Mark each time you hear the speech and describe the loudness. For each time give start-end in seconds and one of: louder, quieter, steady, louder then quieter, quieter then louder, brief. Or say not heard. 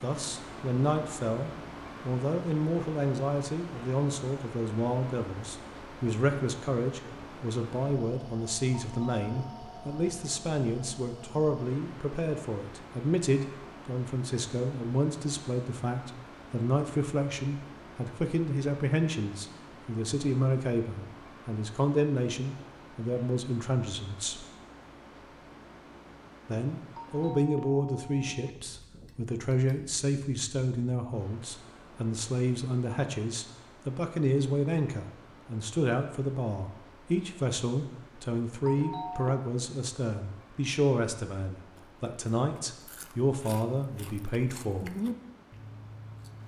0.0-24.4 steady
26.4-44.9 steady.